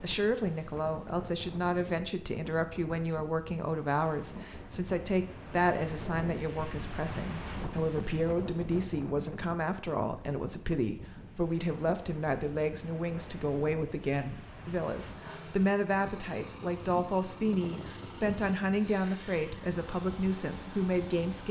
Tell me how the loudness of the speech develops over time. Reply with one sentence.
The loudness of the speech stays about the same.